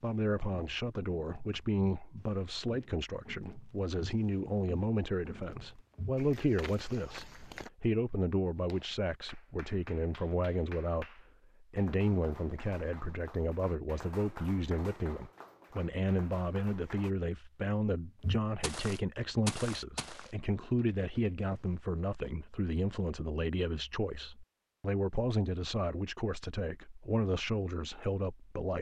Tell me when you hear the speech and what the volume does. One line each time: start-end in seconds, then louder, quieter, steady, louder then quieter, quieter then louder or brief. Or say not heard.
0.0-28.7 steady.